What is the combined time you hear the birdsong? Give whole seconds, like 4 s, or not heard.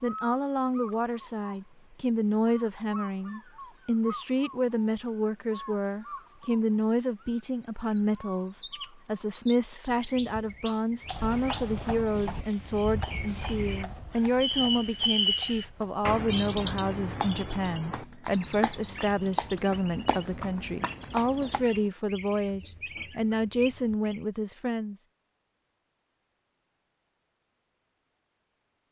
24 s.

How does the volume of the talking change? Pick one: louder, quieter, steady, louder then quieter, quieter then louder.
steady.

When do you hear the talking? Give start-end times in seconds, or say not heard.
0.0-24.9.